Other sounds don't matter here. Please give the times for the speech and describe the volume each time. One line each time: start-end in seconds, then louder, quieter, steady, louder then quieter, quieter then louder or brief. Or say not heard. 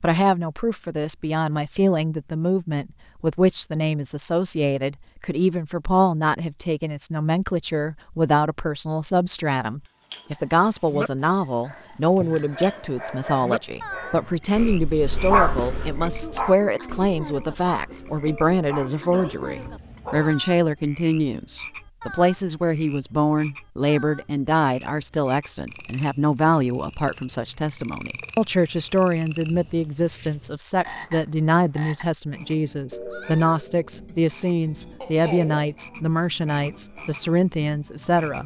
0.0-38.4 steady.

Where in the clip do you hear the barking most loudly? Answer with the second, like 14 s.
15 s.